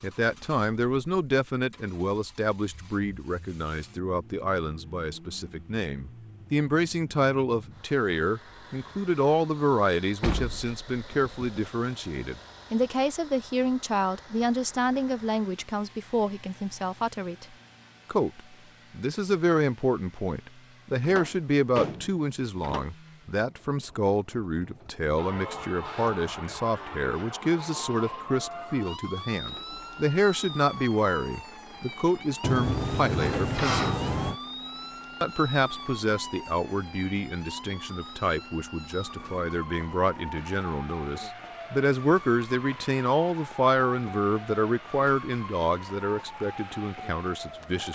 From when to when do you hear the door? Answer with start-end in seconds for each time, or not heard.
10.2-11.7, 21.0-22.9, 32.4-34.4.